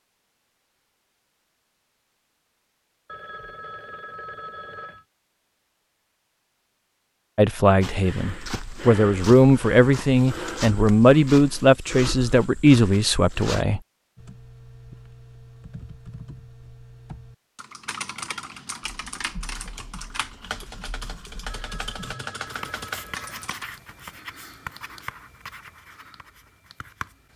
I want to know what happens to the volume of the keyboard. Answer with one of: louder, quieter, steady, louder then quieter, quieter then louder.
louder.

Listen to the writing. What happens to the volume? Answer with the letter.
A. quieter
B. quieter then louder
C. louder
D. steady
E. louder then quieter
E.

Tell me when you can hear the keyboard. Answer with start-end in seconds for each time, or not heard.
14.2-23.6.